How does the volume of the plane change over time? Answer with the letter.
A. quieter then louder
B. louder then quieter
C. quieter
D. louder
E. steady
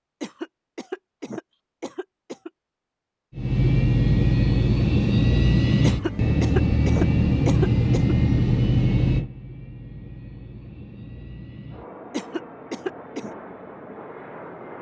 C.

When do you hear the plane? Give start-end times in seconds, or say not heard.
3.4-14.7.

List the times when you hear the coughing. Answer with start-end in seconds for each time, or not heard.
0.2-2.5, 5.8-8.2, 12.1-13.3.